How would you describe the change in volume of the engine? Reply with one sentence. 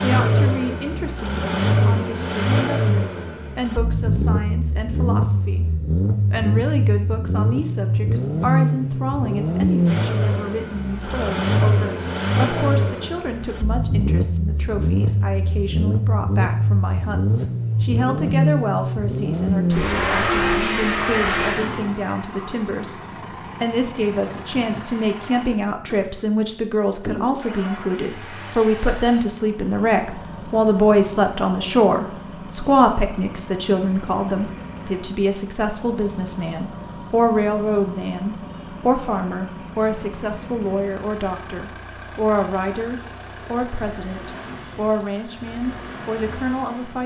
The volume of the engine goes down.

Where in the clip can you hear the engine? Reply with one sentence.
The engine can be heard from 0.0 to 47.0 s.